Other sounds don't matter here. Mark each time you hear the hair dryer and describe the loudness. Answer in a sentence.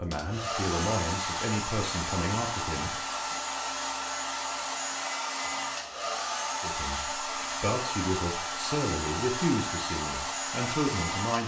The hair dryer can be heard from 0.1 to 11.4 s, at a steady volume.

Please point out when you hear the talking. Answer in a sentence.
The talking can be heard from 0.0 to 3.4 s and from 6.6 to 11.4 s.